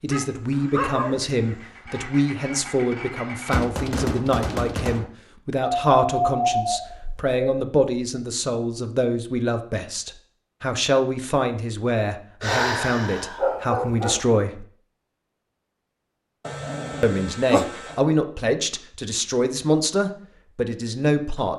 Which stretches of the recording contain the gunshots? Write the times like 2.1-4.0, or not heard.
3.5-5.0.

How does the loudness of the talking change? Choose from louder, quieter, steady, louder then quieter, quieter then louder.
steady.